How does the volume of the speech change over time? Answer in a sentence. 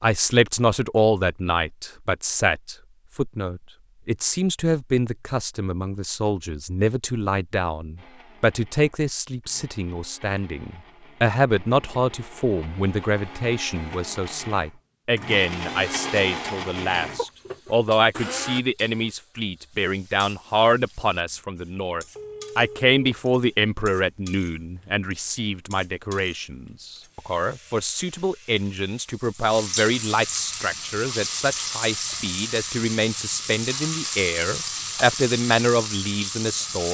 The loudness of the speech stays about the same.